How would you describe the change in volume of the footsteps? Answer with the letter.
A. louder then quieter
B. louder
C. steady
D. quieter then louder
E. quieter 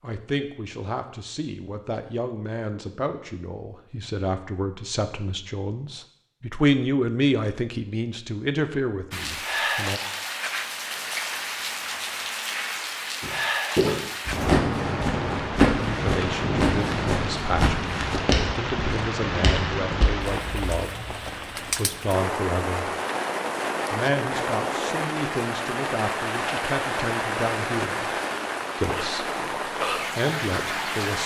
E.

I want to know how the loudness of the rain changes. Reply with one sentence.
The volume of the rain stays about the same.